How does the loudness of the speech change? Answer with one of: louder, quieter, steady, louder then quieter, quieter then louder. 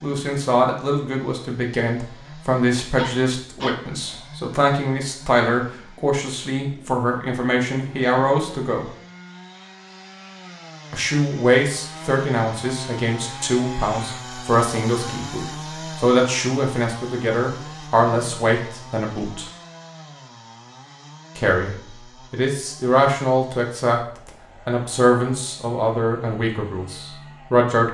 steady.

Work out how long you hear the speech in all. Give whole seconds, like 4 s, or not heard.
24 s.